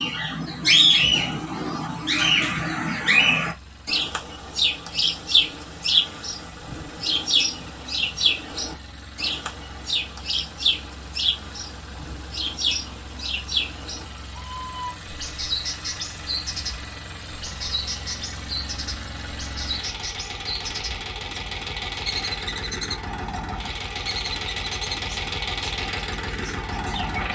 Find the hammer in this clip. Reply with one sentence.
You can't hear the hammer here.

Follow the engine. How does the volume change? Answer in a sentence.
The volume of the engine goes up.